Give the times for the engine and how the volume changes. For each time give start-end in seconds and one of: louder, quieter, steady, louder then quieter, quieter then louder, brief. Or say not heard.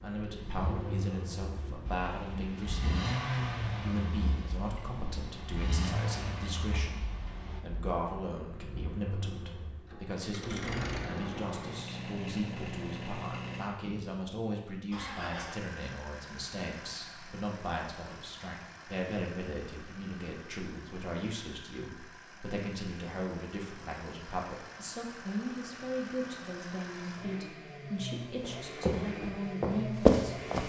0.0-30.6 quieter then louder.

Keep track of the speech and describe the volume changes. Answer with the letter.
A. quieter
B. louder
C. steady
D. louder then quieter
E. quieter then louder
C.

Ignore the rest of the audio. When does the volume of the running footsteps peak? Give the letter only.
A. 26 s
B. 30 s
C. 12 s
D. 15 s
B.